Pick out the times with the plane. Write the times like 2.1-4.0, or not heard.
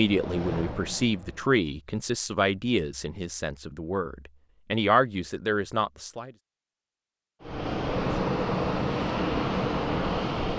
0.0-1.6, 7.4-10.5.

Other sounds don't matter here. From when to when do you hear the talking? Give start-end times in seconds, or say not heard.
0.0-6.3.